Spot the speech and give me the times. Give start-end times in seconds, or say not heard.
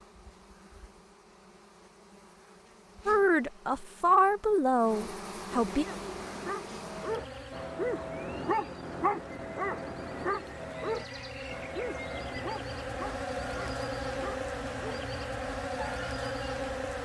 3.0-5.8.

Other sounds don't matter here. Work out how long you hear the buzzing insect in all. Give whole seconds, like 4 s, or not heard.
17 s.